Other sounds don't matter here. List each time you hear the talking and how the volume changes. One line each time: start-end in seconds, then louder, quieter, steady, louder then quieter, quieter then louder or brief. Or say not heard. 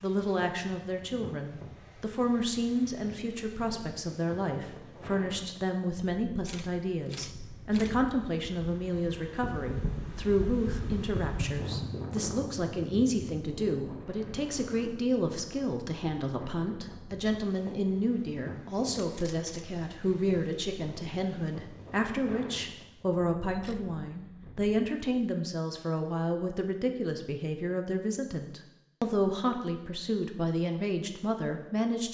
0.0-32.1 steady.